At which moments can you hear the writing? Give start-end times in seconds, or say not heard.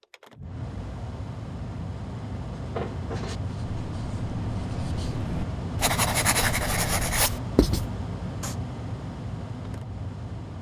2.5-8.6.